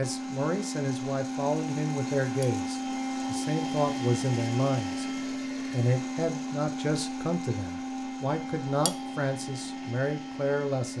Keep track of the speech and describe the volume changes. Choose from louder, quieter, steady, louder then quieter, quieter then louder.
steady.